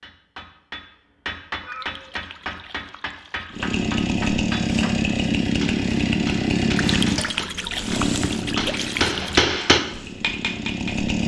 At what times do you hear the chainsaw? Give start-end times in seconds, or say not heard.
3.5-11.2.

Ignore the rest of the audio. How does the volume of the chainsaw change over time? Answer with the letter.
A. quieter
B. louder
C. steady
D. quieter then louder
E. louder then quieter
A.